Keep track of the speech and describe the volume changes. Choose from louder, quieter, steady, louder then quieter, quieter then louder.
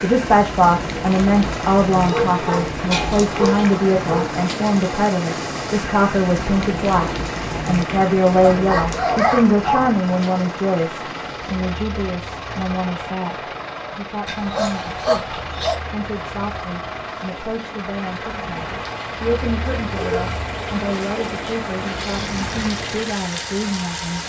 quieter.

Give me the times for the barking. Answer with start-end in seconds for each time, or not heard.
2.0-4.3, 8.4-9.9, 14.2-15.8, 19.9-20.4.